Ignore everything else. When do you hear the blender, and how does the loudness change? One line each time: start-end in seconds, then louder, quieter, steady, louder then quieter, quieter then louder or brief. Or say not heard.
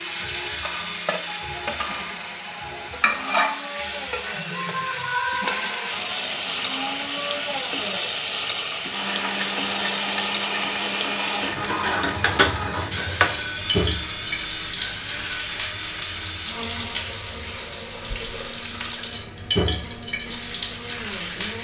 0.1-21.6 louder then quieter.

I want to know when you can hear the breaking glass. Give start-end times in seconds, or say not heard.
not heard.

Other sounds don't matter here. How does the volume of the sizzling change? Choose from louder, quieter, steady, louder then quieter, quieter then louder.
steady.